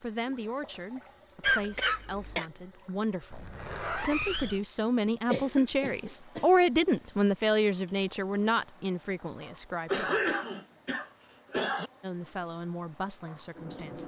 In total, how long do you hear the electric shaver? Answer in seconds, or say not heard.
not heard.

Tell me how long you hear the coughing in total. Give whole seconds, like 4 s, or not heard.
4 s.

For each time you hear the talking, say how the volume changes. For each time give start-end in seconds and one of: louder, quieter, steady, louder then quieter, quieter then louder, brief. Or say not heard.
0.0-10.3 louder then quieter
12.0-14.0 brief.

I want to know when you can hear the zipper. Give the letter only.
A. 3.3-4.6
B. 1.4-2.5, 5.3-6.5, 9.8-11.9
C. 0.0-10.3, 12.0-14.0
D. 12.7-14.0
A.